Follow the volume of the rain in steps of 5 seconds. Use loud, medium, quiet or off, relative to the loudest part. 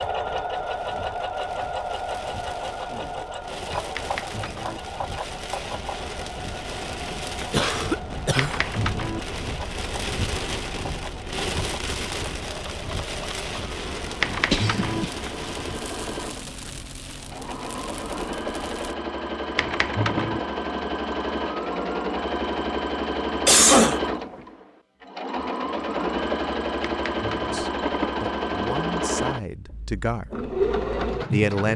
medium, loud, loud, medium, off, off, off.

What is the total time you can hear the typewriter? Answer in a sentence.
You can hear the typewriter for 4 seconds altogether.